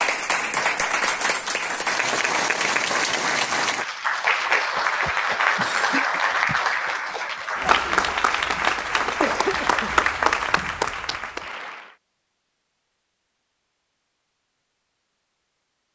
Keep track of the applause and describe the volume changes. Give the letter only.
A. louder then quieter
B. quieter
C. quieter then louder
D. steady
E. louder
D.